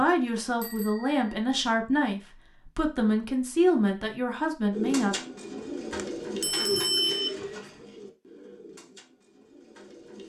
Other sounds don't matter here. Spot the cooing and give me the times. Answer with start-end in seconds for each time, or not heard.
4.7-10.2.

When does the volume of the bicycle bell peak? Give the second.
7 s.